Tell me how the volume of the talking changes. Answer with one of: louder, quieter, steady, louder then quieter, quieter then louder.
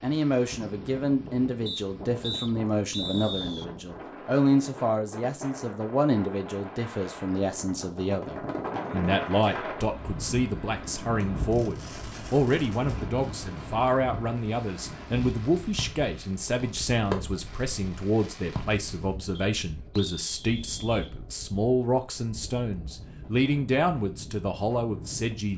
steady.